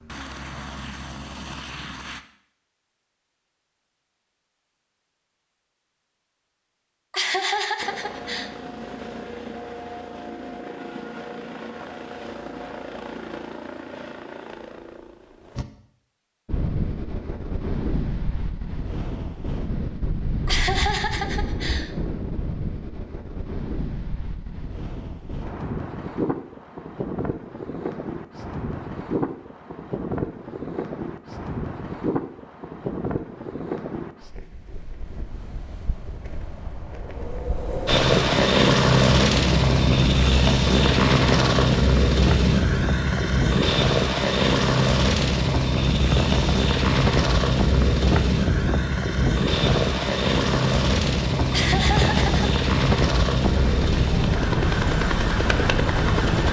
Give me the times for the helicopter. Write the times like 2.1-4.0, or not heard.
0.0-2.2, 7.8-15.7, 37.9-56.4.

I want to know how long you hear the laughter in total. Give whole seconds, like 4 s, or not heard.
4 s.